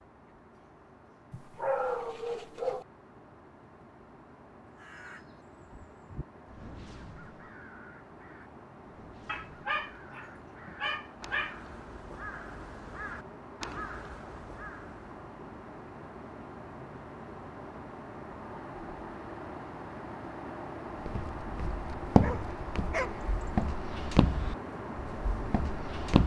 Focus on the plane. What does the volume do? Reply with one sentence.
The loudness of the plane goes up.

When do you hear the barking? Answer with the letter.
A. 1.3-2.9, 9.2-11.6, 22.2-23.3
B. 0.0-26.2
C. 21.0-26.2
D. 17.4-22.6
A.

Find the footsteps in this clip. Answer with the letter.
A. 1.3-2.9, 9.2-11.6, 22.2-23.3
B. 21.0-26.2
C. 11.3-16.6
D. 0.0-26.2
B.